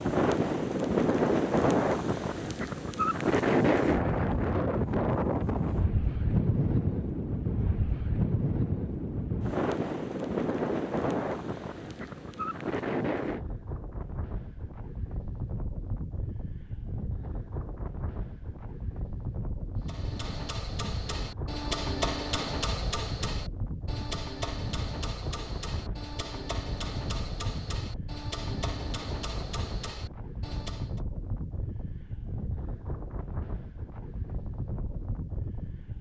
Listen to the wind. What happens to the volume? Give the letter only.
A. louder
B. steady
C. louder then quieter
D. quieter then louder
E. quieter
E.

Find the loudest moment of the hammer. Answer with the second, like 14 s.
22 s.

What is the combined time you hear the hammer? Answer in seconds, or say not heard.
11 s.